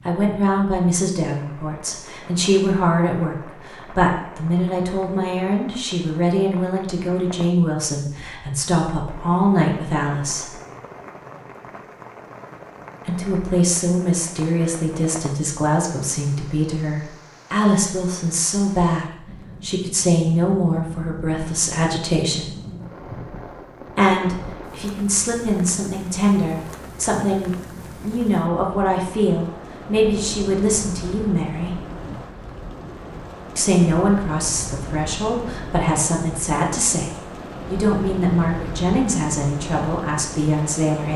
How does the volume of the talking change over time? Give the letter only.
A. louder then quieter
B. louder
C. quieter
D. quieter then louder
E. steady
E.